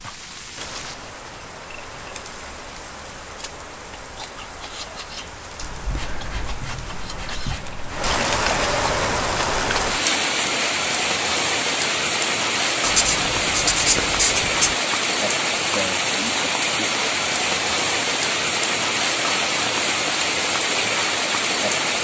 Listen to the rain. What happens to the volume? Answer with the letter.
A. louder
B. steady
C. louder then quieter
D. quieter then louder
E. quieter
A.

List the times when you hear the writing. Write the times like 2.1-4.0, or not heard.
5.6-8.2, 12.8-14.8.